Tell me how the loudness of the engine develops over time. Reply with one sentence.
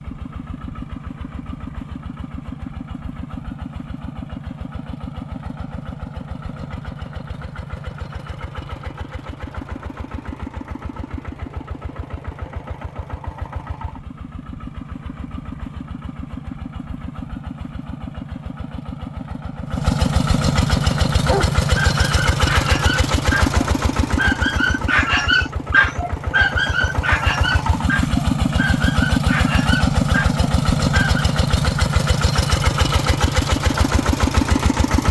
The loudness of the engine goes up.